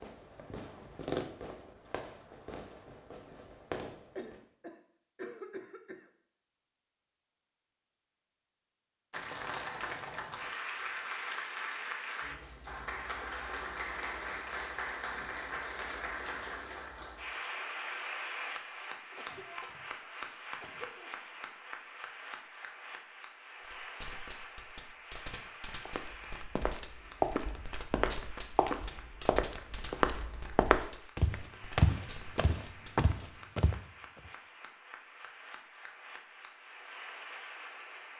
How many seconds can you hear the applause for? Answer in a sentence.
The applause can be heard for 29 seconds in total.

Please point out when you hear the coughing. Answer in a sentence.
You can hear the coughing from 4.2 to 6.1 s and from 19.1 to 21.1 s.